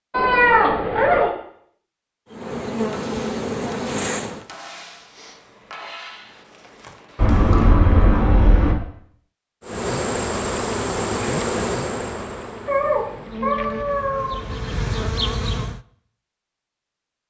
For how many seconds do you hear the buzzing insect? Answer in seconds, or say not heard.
8 s.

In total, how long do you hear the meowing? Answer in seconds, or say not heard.
5 s.